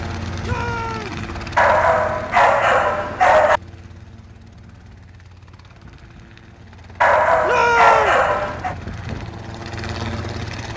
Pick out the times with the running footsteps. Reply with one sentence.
You can't hear the running footsteps here.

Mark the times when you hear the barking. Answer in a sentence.
You can hear the barking from 1.6 to 3.6 s and from 7.0 to 8.8 s.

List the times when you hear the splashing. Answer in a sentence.
You can't hear the splashing here.